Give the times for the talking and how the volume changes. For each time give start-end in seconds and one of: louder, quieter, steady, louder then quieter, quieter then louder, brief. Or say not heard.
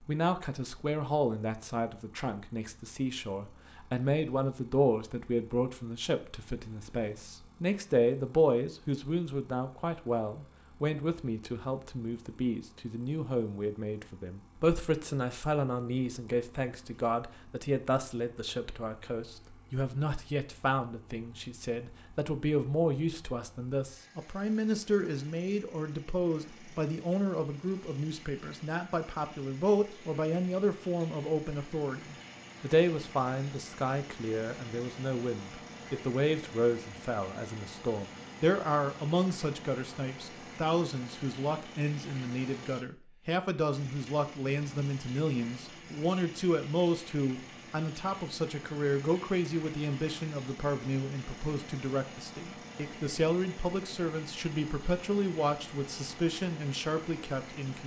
0.0-57.8 steady.